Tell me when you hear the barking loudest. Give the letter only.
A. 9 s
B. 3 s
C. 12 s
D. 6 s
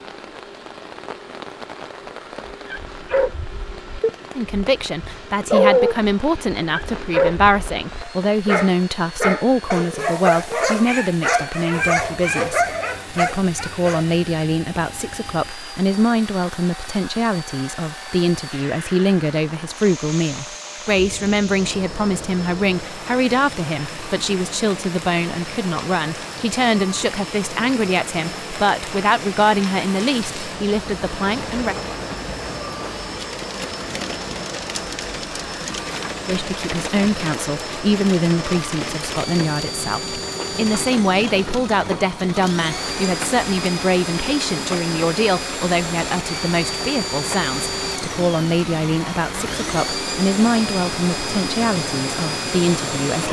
D.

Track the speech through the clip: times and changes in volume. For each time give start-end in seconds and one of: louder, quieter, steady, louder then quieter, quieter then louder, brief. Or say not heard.
4.3-31.8 steady
36.2-53.2 steady.